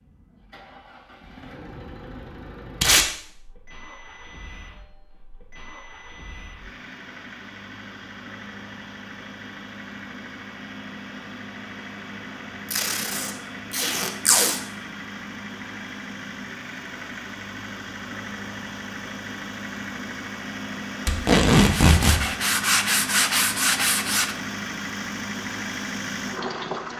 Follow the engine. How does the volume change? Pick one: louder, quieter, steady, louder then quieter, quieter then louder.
louder.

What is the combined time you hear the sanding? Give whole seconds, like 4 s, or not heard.
3 s.